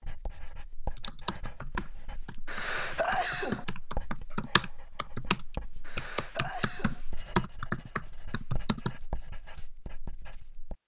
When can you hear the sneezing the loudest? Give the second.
3 s.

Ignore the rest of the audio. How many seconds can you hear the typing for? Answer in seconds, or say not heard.
8 s.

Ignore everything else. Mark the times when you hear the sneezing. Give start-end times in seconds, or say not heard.
2.5-3.6, 5.8-7.0.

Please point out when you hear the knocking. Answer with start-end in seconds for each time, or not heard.
not heard.